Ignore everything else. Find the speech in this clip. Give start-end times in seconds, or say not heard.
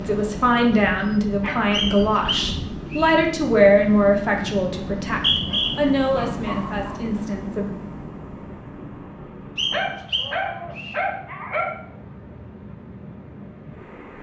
0.0-7.8.